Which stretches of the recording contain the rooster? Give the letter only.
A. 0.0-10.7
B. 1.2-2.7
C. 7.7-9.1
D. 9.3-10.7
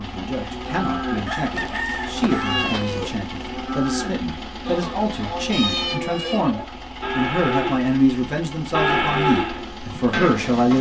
B.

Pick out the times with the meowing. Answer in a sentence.
The meowing can be heard from 1.6 to 3.5 s and from 5.5 to 6.5 s.